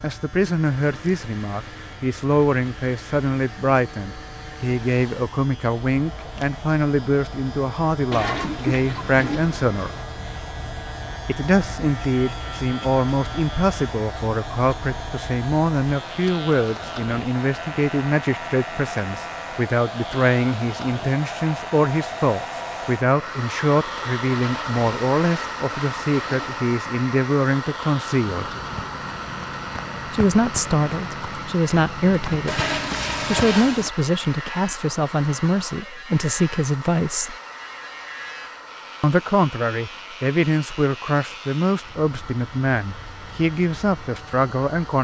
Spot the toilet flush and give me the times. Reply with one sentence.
The toilet flush can be heard from 8.1 to 10.1 s, from 24.3 to 26.6 s and from 32.5 to 33.9 s.